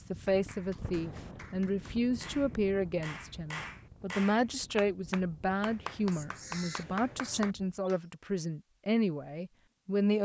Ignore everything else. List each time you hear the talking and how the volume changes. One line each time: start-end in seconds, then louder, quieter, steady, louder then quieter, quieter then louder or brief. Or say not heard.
0.1-10.2 steady.